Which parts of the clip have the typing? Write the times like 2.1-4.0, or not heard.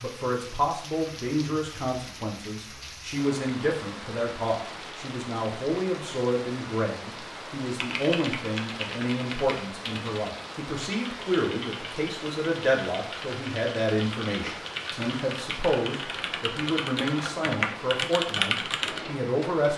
7.8-19.0.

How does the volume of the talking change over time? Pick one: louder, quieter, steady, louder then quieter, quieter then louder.
steady.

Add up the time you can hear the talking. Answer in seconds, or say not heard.
20 s.